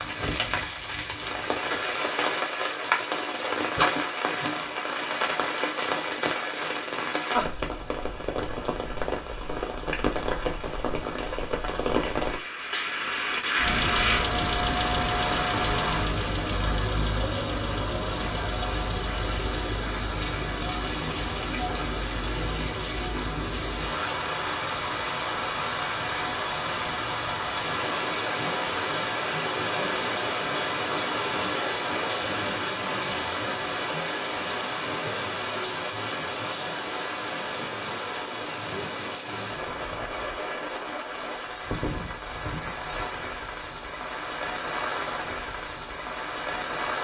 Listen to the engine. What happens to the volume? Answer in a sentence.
The loudness of the engine goes down.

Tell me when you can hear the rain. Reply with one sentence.
You can hear the rain from 0.0 to 46.9 s.